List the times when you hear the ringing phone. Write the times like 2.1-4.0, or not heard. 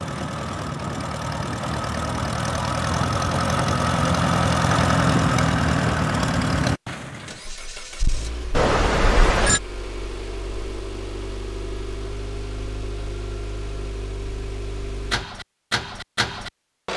8.5-9.6.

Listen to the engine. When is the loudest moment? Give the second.
5 s.